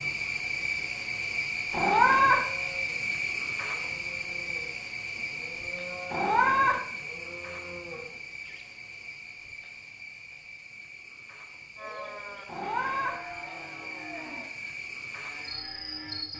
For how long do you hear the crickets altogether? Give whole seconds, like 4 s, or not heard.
16 s.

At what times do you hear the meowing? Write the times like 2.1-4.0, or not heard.
1.7-2.5, 6.1-6.8, 12.4-13.2.